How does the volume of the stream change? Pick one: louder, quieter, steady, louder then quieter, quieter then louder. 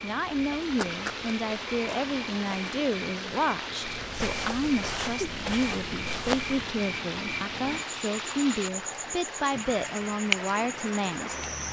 steady.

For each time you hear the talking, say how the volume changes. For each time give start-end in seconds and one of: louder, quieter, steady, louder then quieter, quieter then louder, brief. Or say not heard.
0.0-11.3 steady.